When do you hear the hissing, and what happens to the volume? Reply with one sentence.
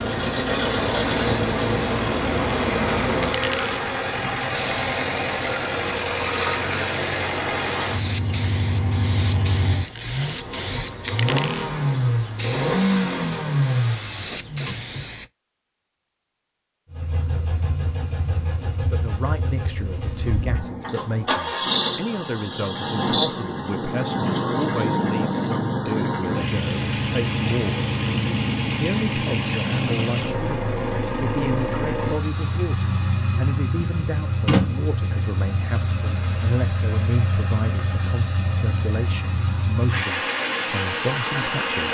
You can hear the hissing from 0.0 to 15.2 s, getting quieter.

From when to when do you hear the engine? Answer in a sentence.
The engine can be heard from 0.0 to 15.1 s and from 16.9 to 41.8 s.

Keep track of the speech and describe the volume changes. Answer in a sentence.
The volume of the speech stays about the same.